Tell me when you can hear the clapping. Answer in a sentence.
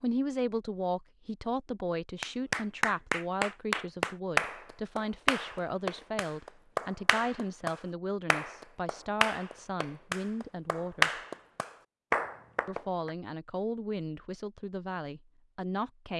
The clapping can be heard from 2.2 to 13.1 s.